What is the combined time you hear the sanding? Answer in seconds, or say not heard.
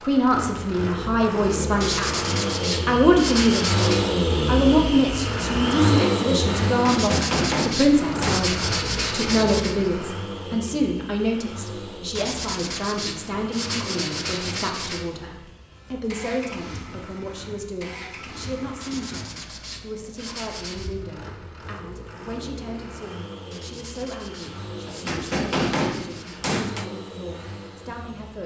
13 s.